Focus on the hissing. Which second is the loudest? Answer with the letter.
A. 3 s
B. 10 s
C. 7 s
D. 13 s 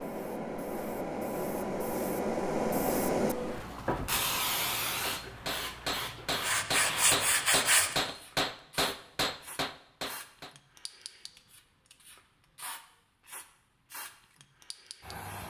A.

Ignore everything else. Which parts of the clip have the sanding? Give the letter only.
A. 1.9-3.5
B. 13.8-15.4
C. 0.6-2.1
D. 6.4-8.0
D.